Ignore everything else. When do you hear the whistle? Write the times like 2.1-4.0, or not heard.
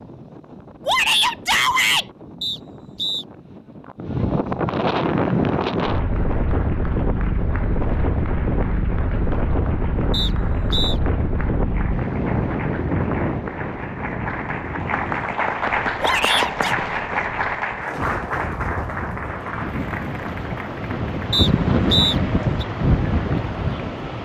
2.4-3.2, 10.1-11.0, 21.3-22.6.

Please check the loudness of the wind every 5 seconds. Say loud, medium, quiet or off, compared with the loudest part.
medium, loud, loud, medium, loud.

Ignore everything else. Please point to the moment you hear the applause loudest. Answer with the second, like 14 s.
16 s.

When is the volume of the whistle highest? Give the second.
22 s.